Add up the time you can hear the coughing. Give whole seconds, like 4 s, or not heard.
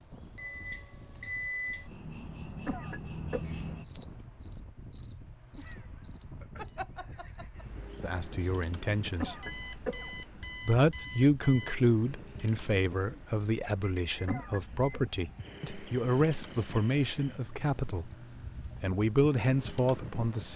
3 s.